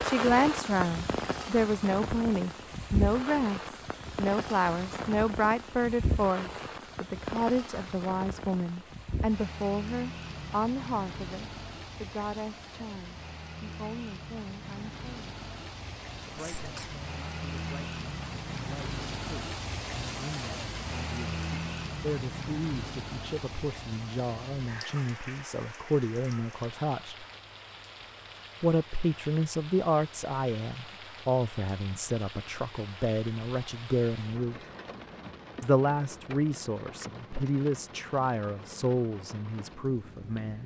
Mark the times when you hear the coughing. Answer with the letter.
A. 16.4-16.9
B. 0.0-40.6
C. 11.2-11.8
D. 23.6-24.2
A.